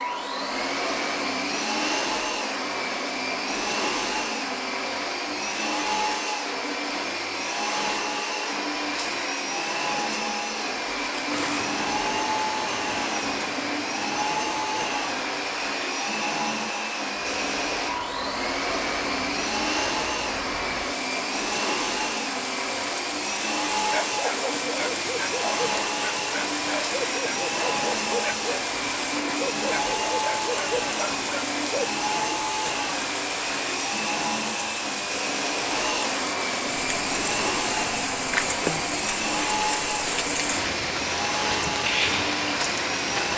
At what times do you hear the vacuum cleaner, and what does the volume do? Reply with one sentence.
The vacuum cleaner can be heard from 0.0 to 43.3 s, at a steady volume.